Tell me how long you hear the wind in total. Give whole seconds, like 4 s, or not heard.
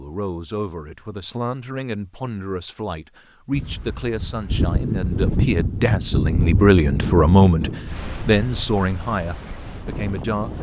7 s.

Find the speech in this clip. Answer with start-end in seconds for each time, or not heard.
0.0-10.5.